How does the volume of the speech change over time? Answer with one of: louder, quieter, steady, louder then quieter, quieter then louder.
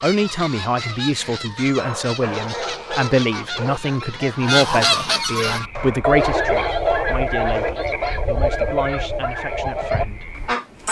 quieter.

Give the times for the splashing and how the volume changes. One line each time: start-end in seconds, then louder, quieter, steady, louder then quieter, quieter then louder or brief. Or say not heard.
not heard.